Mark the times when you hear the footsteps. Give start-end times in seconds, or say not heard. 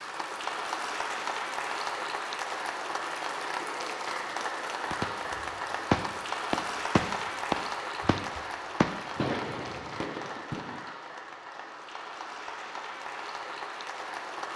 not heard.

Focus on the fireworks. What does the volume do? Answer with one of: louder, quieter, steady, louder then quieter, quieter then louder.
quieter.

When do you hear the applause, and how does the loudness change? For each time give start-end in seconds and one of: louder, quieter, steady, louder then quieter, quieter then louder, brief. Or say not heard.
0.0-14.5 quieter.